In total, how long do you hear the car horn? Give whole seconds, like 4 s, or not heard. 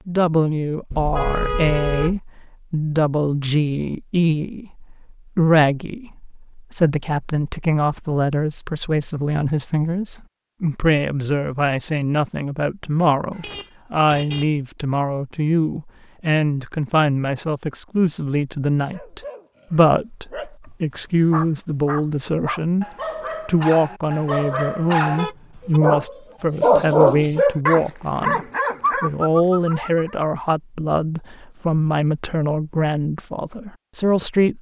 3 s.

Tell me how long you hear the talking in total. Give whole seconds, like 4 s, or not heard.
34 s.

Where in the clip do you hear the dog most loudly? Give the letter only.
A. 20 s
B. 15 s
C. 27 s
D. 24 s
C.